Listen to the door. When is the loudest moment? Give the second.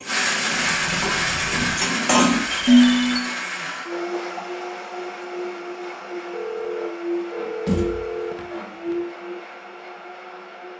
8 s.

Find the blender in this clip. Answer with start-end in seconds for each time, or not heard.
0.0-10.7.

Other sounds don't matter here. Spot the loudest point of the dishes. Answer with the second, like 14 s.
3 s.